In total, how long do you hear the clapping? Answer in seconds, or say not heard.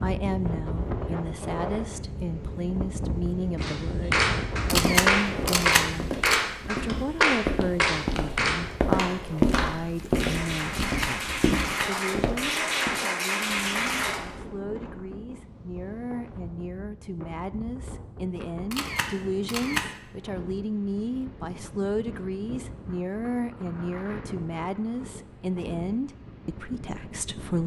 11 s.